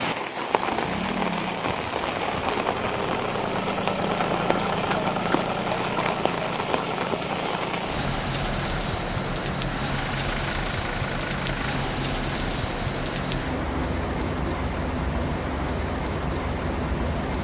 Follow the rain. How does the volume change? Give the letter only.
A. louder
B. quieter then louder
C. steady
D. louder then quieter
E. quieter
C.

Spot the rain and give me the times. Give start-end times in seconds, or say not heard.
0.0-17.3.